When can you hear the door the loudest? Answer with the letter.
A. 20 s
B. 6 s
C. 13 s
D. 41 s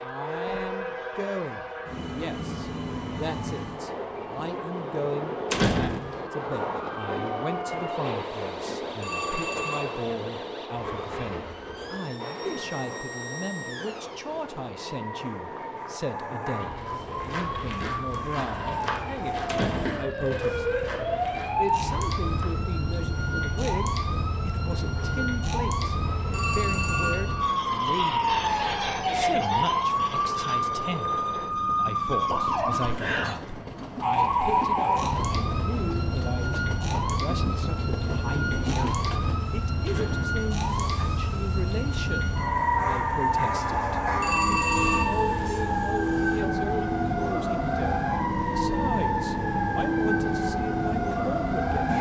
B.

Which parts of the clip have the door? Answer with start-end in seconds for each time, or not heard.
5.5-6.2, 19.4-20.1, 39.9-40.4.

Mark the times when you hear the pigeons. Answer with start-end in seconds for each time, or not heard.
not heard.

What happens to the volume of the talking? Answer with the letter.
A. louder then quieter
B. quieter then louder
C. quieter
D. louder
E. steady
E.